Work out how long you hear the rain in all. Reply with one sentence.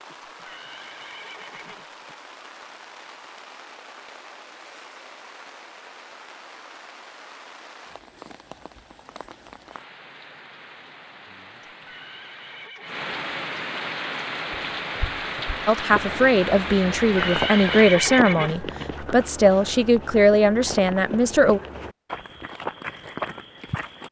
You can hear the rain for 18 seconds altogether.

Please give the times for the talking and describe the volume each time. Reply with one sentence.
The talking can be heard from 15.7 to 21.6 s, at a steady volume.